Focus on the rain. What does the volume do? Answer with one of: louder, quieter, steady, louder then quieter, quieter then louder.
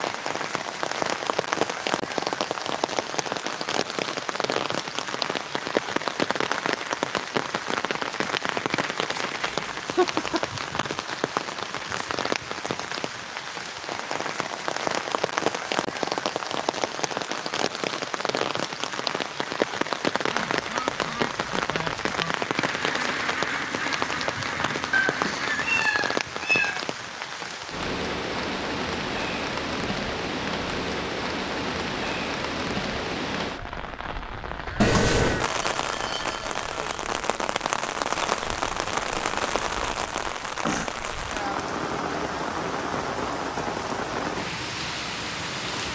steady.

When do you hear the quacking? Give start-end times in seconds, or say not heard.
20.3-25.8.